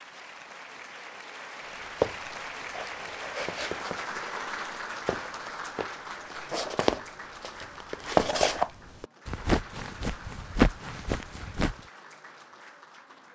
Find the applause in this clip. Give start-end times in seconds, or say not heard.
0.0-13.2.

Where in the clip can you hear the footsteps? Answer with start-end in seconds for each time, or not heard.
2.0-11.8.